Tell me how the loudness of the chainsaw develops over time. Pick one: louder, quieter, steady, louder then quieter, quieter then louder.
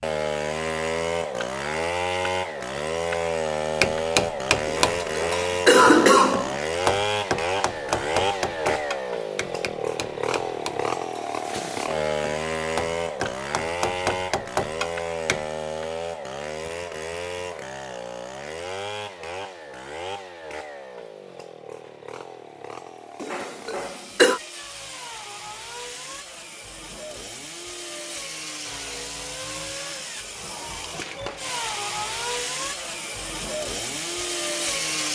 quieter then louder.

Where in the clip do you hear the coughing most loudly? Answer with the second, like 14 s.
6 s.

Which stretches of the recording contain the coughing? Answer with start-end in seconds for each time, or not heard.
4.7-6.5, 23.2-24.4.